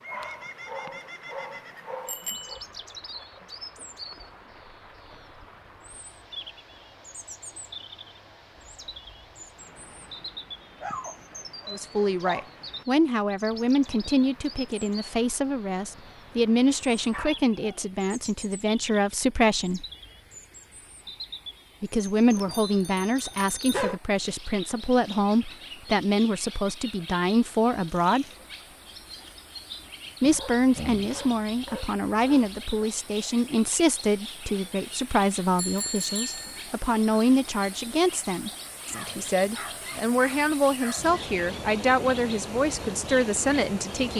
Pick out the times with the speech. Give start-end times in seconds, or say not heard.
11.7-19.9, 21.8-28.2, 30.2-44.1.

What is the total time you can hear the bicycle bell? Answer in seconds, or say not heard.
3 s.